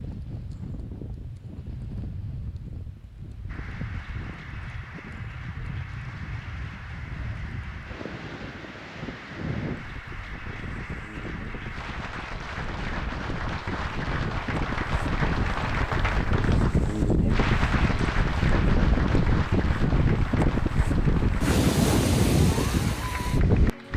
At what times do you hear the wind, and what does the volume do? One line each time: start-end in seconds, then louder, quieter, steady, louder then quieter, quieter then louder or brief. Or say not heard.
0.0-23.9 louder.